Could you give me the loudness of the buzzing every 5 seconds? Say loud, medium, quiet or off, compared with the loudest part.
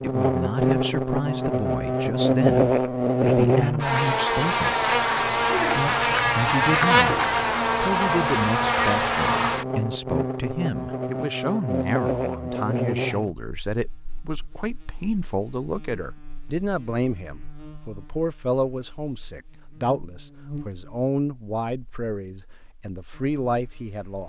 loud, loud, medium, quiet, quiet.